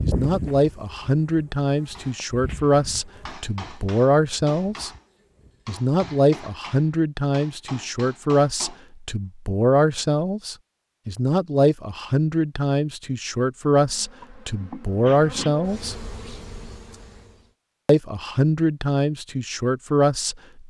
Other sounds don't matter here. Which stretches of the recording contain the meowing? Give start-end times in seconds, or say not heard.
not heard.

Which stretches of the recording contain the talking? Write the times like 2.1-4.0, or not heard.
0.0-4.9, 5.7-15.9, 17.9-20.6.